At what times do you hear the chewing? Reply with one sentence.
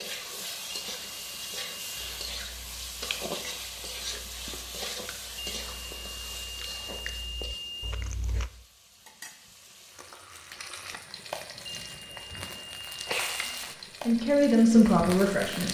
You can hear the chewing from 1.9 to 8.5 s.